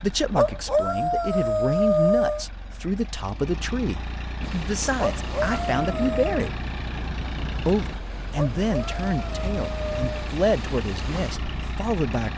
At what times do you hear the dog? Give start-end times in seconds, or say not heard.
0.3-2.5, 5.0-6.5, 8.3-10.2.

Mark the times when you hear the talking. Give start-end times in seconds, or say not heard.
0.0-6.5, 7.7-12.3.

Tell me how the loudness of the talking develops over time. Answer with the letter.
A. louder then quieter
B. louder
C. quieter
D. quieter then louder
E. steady
E.